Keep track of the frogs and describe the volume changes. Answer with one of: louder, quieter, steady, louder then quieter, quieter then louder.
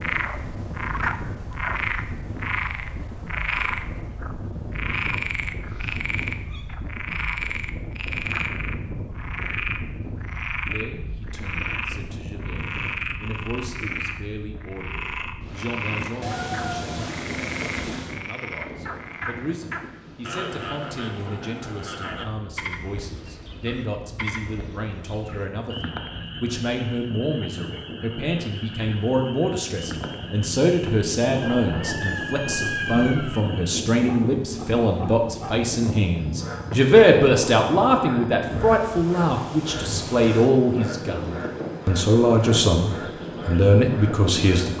quieter.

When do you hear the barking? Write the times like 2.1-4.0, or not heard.
not heard.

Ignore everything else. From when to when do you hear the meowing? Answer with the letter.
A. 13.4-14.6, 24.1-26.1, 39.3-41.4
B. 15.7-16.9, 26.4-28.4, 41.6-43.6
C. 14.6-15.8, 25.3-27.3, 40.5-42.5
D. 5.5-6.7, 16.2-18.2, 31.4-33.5
D.